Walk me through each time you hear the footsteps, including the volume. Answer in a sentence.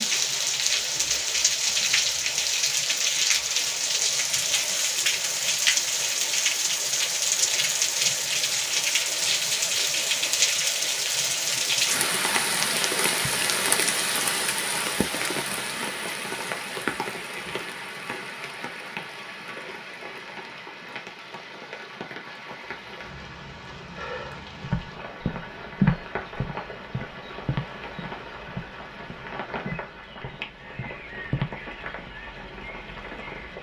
The footsteps can be heard from 24.6 to 32.1 s, getting quieter then louder.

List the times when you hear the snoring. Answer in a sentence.
The snoring can't be heard in this clip.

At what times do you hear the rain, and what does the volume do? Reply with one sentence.
The rain can be heard from 0.0 to 33.5 s, getting quieter.